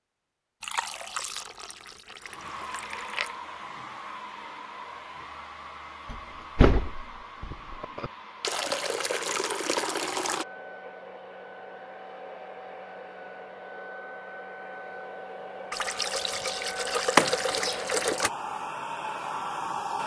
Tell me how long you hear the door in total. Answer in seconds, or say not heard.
3 s.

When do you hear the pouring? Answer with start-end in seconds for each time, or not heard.
0.6-3.4, 8.4-10.4, 15.7-18.3.